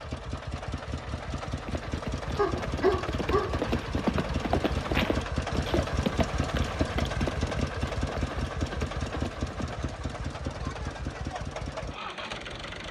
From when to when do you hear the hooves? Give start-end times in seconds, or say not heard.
1.4-9.8.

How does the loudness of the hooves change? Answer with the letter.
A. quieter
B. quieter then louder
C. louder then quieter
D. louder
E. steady
C.